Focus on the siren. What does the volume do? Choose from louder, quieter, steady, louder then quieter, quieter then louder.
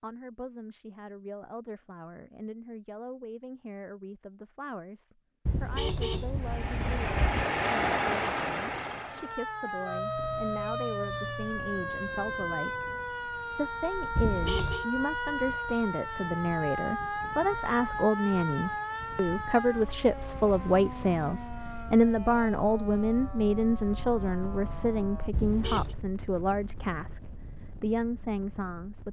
quieter.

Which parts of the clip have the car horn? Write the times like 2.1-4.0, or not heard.
5.5-7.5, 14.2-14.8, 25.3-25.9.